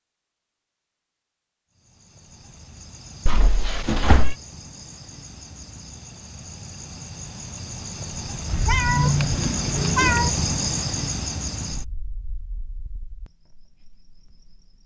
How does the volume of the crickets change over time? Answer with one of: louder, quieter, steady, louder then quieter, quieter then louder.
louder then quieter.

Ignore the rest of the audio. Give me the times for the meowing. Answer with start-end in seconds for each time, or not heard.
3.2-4.3, 8.4-10.3.